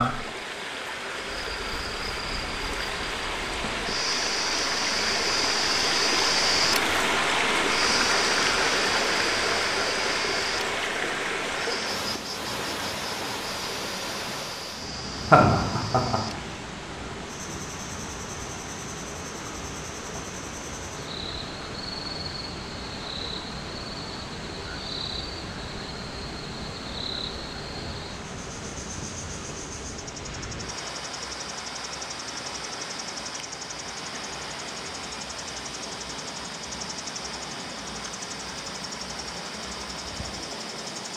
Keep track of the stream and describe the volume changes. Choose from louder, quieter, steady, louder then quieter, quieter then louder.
quieter.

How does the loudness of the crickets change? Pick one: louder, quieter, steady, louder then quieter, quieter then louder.
quieter.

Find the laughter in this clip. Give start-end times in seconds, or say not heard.
15.2-16.2.